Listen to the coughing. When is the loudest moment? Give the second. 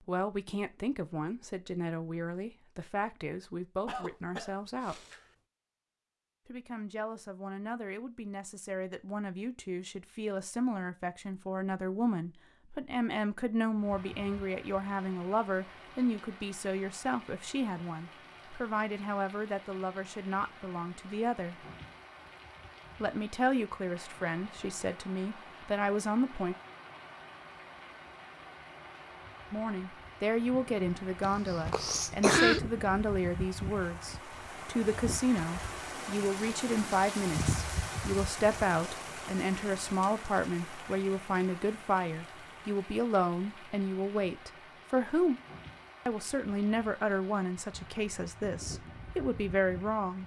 32 s.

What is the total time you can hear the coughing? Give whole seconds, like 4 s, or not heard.
3 s.